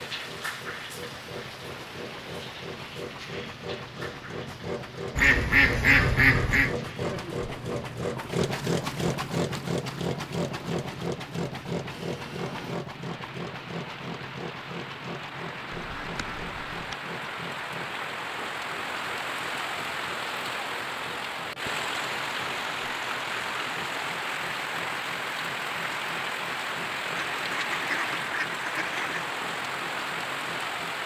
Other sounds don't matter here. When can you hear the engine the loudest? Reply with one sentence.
The loudest moment of the engine is at 9 seconds.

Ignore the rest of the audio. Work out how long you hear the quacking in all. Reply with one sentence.
The quacking can be heard for 5 seconds in total.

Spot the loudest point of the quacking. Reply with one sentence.
The volume of the quacking peaks at 6 seconds.